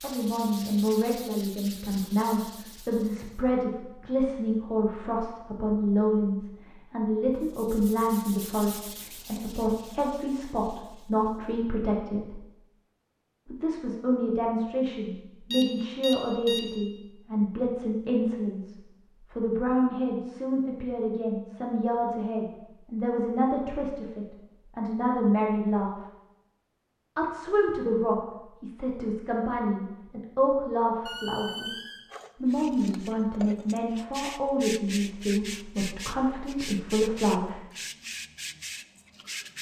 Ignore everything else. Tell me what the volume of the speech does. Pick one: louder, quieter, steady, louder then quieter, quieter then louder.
steady.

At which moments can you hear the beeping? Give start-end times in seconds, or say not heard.
15.5-16.9.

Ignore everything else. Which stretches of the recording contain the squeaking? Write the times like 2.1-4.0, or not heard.
31.1-32.0.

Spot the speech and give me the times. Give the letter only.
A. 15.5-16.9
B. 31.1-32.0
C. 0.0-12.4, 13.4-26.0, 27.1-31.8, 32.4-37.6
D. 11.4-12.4
C.